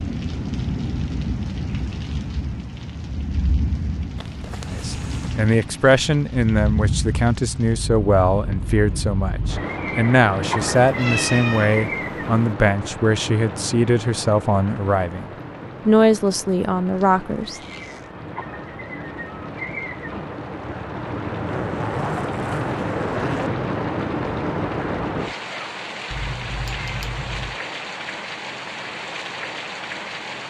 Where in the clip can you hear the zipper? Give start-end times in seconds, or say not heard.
4.2-5.4, 16.9-18.1, 21.4-23.5.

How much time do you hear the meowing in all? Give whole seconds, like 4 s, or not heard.
3 s.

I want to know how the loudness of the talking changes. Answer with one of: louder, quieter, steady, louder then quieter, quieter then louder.
steady.